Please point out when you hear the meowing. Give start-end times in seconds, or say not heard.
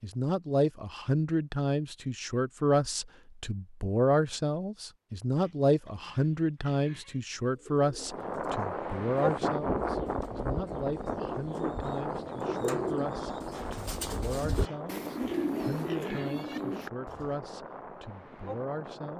not heard.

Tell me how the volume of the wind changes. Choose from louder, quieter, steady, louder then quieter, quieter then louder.
quieter.